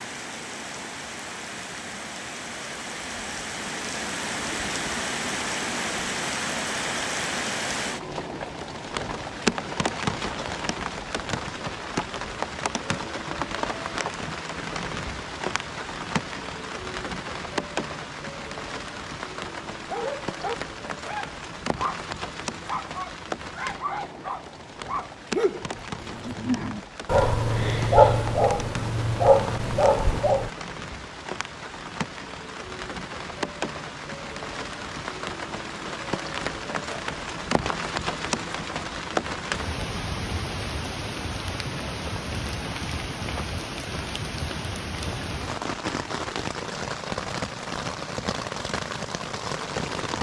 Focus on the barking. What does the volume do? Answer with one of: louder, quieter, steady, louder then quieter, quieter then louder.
louder.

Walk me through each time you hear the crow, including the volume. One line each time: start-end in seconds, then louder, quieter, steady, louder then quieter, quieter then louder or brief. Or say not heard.
not heard.